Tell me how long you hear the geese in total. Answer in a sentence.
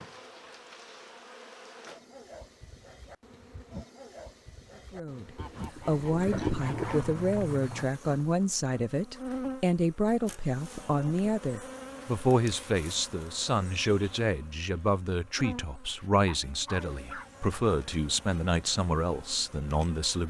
You can hear the geese for 2 seconds altogether.